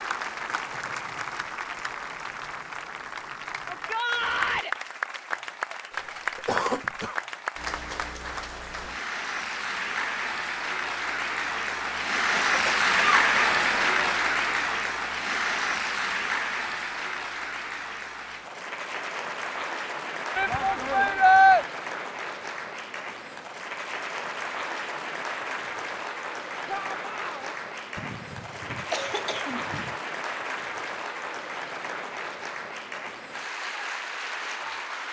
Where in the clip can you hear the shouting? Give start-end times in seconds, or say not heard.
3.7-4.8, 20.4-21.6, 26.6-27.6.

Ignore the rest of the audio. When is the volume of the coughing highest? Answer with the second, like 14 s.
7 s.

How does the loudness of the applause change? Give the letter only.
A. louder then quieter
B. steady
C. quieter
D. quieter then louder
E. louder
A.